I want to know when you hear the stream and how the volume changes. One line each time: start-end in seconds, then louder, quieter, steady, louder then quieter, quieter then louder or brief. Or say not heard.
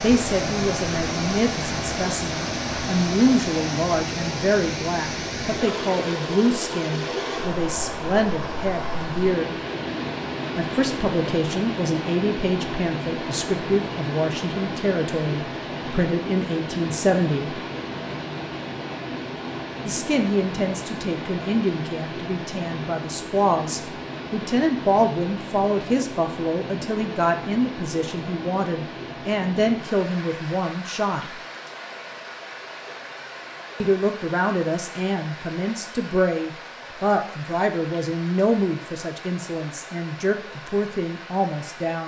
0.0-42.0 quieter.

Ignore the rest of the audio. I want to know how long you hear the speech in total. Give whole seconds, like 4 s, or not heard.
36 s.